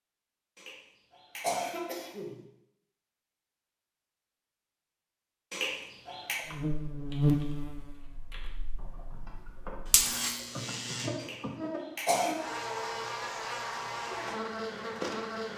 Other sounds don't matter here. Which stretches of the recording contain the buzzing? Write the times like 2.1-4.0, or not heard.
6.5-15.5.